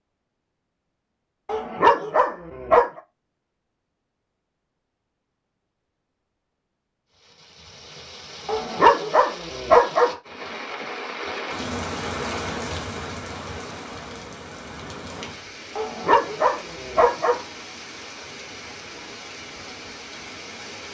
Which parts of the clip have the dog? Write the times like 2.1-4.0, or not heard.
1.4-2.9, 8.4-10.2, 15.8-17.4.